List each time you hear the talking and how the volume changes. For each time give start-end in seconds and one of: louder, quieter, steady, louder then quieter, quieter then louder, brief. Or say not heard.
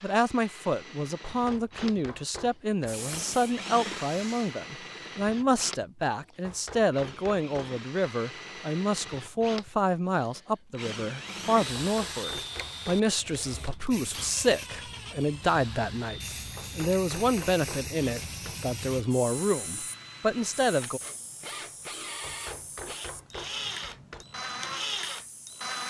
0.0-21.0 steady.